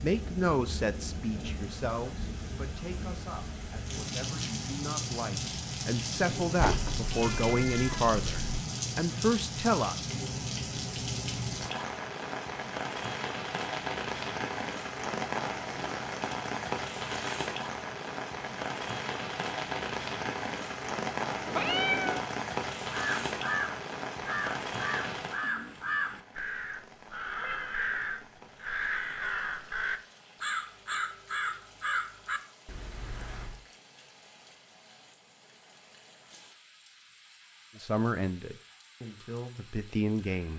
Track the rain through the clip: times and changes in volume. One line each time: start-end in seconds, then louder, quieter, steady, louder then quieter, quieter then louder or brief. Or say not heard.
0.0-40.5 quieter.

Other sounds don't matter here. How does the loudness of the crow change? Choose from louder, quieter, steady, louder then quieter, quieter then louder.
steady.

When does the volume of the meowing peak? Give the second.
22 s.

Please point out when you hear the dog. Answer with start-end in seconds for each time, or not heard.
not heard.